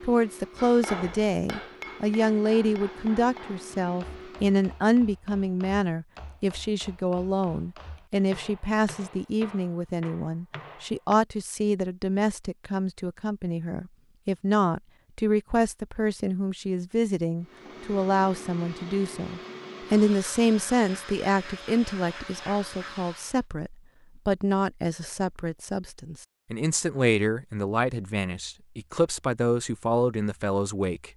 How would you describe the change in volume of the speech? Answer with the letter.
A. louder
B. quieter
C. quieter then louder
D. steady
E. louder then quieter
D.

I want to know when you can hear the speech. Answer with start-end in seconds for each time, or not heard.
0.0-31.1.